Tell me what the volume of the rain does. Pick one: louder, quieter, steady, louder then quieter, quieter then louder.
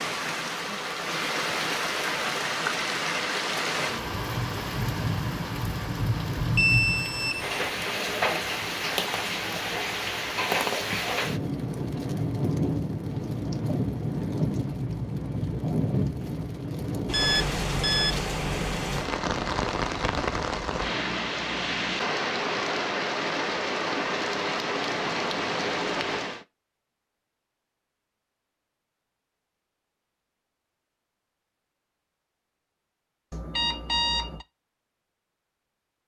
steady.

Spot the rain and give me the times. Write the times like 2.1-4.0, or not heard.
0.0-26.4.